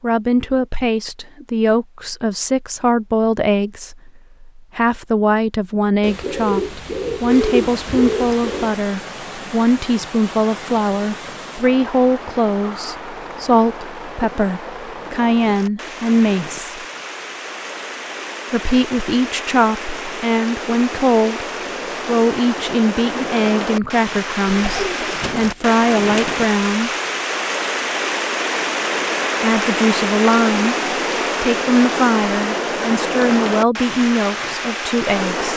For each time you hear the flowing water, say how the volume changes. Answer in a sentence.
You can hear the flowing water from 7.2 to 35.5 s, getting louder.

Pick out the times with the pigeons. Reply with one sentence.
The pigeons can be heard from 6.0 to 8.8 s and from 24.4 to 26.4 s.